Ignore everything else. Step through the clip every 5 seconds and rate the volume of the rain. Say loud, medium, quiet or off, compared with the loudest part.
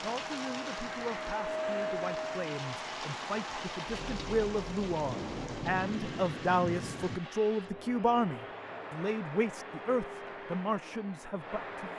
loud, loud, off.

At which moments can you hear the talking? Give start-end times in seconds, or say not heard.
0.0-11.9.